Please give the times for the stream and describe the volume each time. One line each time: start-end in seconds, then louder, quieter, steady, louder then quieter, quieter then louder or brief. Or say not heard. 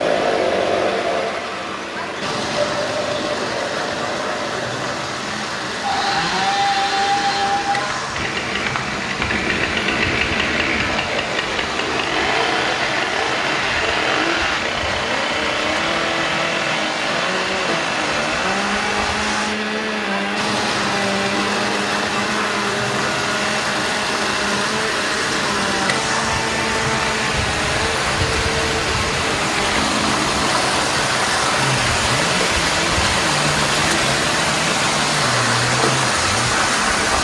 0.0-37.1 louder.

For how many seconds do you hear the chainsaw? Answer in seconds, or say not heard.
37 s.